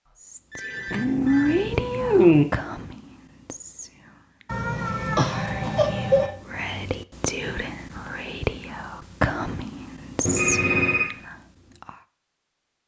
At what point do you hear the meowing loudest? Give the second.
2 s.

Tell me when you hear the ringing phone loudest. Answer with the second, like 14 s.
11 s.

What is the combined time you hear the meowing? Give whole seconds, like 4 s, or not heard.
4 s.